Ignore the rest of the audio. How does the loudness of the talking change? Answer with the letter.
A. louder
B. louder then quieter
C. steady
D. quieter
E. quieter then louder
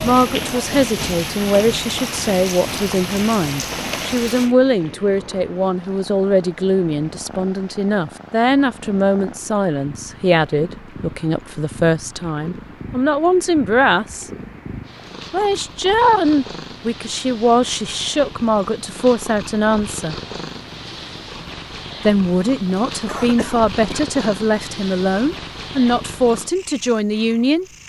C.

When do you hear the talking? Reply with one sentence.
The talking can be heard from 0.0 to 14.2 s, from 15.3 to 20.2 s and from 22.1 to 27.6 s.